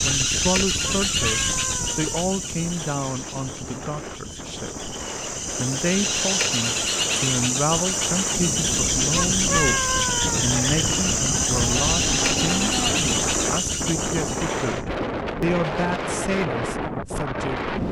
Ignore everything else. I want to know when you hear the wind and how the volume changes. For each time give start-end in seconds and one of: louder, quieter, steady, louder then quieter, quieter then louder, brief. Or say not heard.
0.0-17.8 louder.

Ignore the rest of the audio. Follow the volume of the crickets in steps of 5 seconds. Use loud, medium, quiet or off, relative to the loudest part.
loud, loud, loud, off.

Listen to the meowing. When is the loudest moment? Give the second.
10 s.